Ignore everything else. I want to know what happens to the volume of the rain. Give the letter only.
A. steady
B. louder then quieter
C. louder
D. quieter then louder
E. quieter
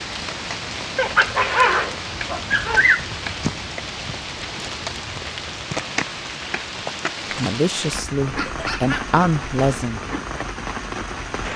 A.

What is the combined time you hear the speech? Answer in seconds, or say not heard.
3 s.